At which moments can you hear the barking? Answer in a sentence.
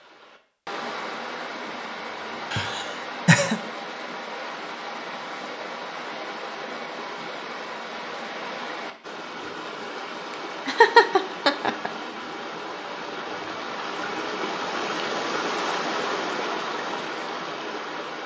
You can't hear the barking here.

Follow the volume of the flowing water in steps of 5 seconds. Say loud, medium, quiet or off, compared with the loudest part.
medium, medium, loud, loud.